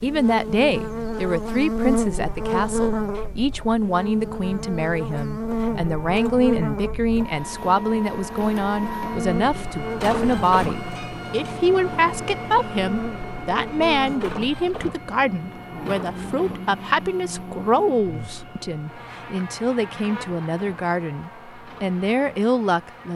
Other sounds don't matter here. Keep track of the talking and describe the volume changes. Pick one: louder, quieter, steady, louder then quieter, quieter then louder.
steady.